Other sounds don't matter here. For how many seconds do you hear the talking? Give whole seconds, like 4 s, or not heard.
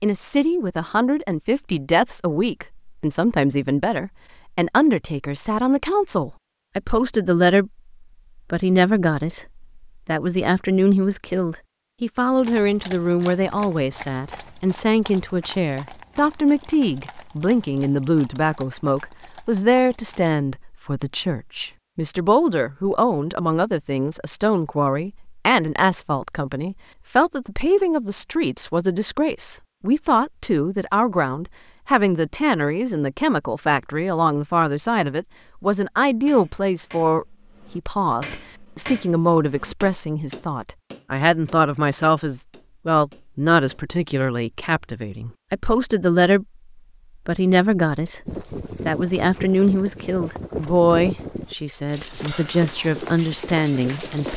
53 s.